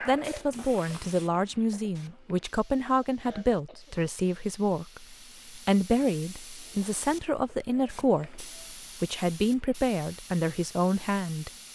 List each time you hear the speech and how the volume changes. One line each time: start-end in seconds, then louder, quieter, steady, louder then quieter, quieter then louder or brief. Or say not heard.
0.1-11.5 steady.